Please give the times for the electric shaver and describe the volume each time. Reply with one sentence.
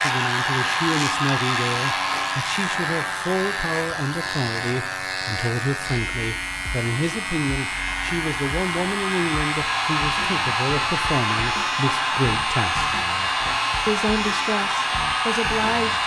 The electric shaver can be heard from 0.0 to 16.0 s, at a steady volume.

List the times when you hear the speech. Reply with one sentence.
The speech can be heard from 0.0 to 12.9 s and from 13.8 to 16.0 s.